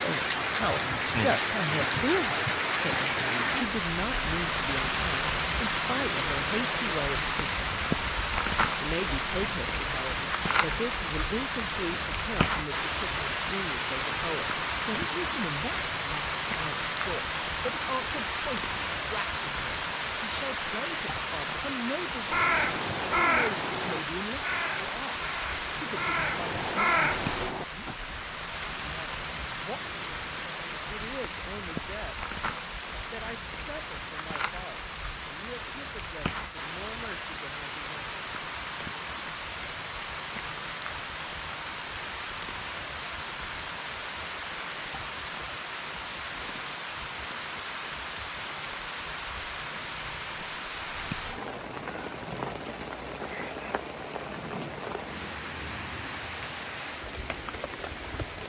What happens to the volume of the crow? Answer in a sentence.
The volume of the crow goes down, then up.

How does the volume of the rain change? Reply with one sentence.
The volume of the rain goes down.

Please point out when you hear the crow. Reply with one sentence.
The crow can be heard from 22.2 to 27.9 s.